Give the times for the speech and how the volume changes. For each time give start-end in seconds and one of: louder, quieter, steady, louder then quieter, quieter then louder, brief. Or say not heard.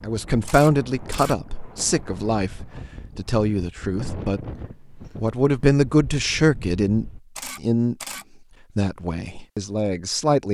0.0-4.5 quieter then louder
5.2-8.0 brief
8.8-10.4 brief.